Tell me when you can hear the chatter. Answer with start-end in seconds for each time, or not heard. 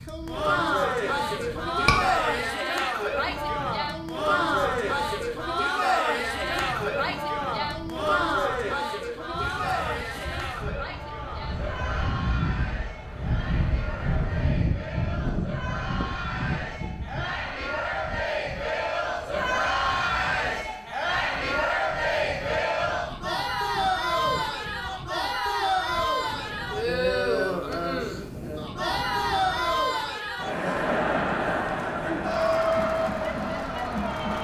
0.1-34.3.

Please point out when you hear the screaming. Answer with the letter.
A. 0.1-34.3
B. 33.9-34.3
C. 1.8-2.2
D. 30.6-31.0
C.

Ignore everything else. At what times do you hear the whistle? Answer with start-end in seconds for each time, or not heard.
not heard.